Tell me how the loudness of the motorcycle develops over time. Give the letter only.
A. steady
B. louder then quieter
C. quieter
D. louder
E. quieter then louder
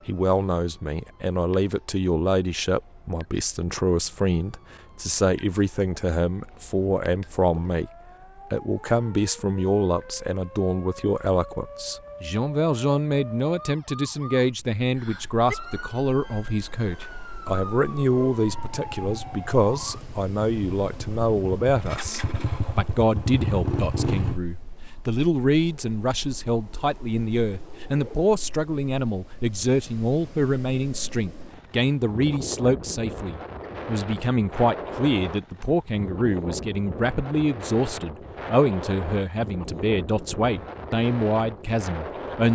D.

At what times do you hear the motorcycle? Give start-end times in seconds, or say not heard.
18.4-24.4.